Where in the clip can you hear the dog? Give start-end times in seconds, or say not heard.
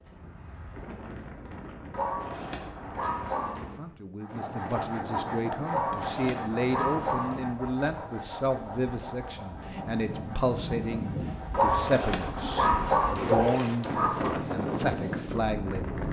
1.9-3.7, 5.7-7.5, 11.5-14.3.